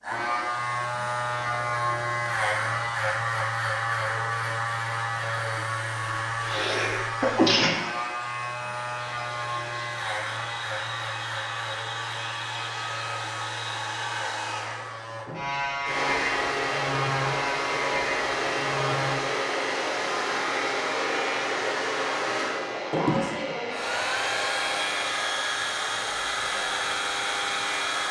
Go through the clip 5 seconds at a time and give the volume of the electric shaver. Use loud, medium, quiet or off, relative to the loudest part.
loud, loud, medium, loud, medium, medium.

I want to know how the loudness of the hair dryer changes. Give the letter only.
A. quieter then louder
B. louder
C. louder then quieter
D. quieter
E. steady
B.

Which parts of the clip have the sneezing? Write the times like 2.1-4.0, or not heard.
6.5-7.7.